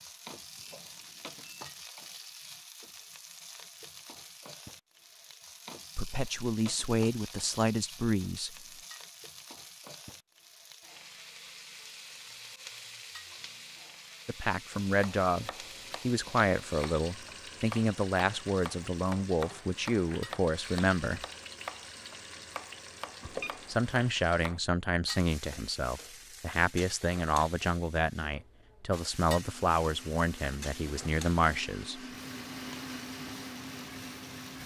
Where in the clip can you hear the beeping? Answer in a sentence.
You can hear the beeping from 0.6 to 1.7 s and from 23.2 to 23.9 s.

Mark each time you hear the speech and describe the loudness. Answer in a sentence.
The speech can be heard briefly from 6.0 to 8.6 s; from 14.2 to 21.2 s, at a steady volume; and from 23.2 to 32.0 s, at a steady volume.